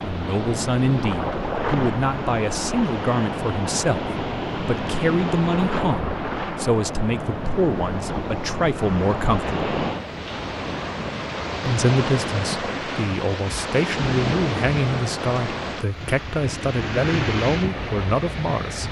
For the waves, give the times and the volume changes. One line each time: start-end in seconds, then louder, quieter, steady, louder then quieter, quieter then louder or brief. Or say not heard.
0.0-18.8 steady.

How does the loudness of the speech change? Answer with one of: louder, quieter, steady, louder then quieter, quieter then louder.
steady.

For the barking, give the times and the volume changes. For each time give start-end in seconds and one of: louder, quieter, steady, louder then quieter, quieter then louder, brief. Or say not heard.
not heard.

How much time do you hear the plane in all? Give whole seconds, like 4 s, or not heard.
not heard.